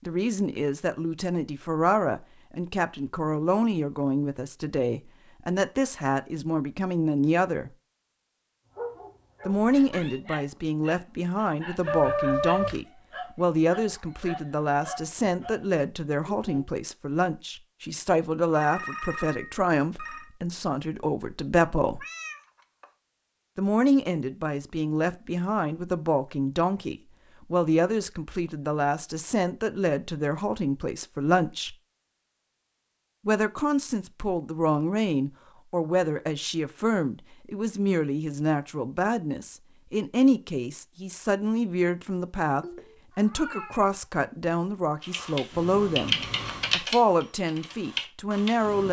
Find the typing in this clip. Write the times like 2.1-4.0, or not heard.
45.0-48.8.